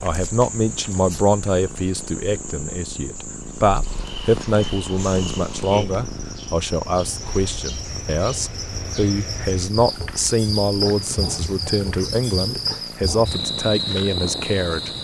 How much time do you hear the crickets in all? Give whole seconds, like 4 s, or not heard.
15 s.